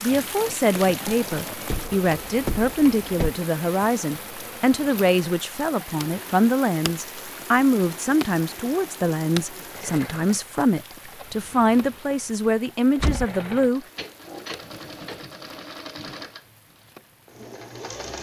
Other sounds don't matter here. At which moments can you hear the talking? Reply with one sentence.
You can hear the talking from 0.0 to 13.8 s.